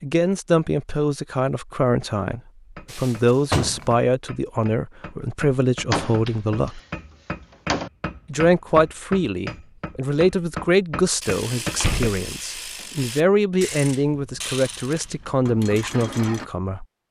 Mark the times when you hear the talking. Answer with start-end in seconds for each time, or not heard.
0.0-6.8, 8.3-16.9.